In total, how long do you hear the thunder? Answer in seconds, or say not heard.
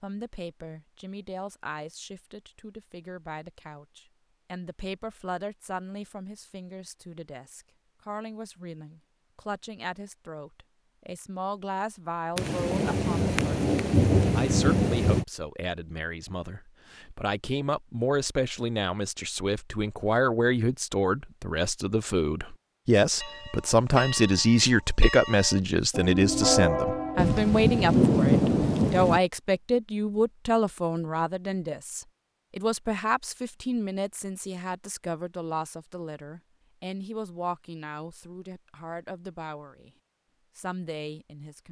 5 s.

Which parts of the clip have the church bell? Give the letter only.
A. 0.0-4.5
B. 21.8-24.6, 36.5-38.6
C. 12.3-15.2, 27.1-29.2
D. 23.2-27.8
D.